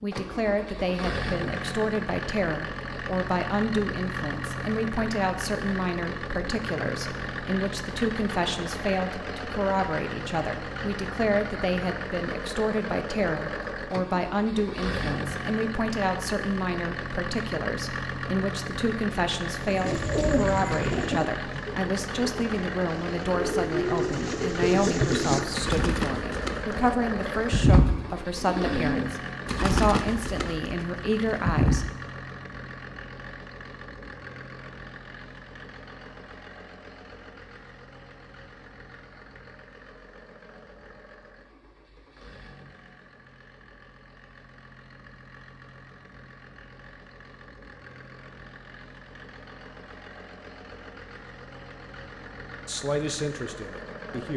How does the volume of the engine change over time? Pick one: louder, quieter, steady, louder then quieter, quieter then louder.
quieter.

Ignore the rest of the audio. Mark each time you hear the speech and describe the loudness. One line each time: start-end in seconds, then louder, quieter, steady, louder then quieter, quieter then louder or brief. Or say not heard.
0.0-31.9 steady
52.6-54.3 brief.